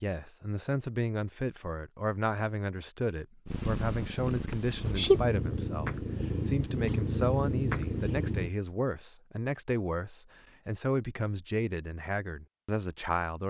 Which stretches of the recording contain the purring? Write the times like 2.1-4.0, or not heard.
3.5-8.5.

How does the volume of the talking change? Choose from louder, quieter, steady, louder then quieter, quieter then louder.
steady.